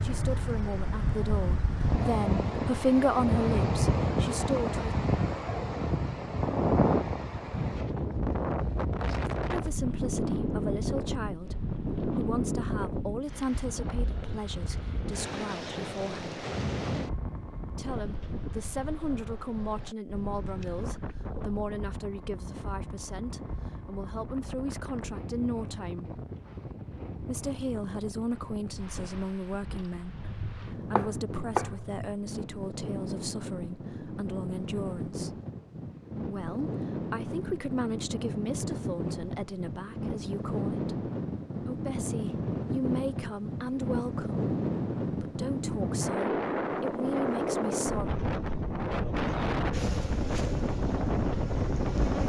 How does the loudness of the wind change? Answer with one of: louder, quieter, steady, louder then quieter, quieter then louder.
quieter then louder.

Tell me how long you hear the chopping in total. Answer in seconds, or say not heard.
2 s.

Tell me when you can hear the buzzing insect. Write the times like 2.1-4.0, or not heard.
49.7-52.2.